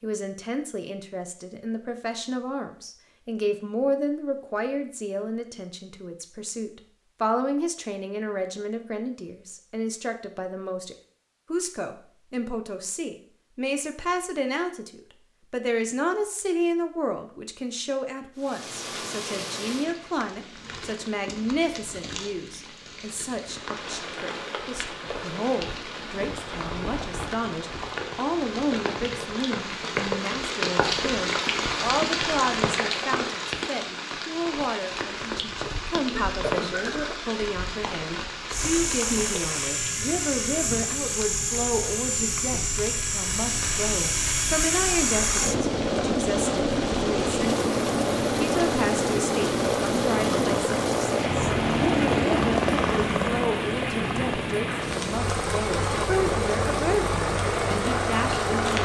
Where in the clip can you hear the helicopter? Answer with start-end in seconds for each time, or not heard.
38.5-58.8.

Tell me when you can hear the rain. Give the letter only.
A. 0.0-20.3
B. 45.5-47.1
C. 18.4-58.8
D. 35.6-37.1
C.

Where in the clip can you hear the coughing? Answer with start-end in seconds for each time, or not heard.
35.6-37.1.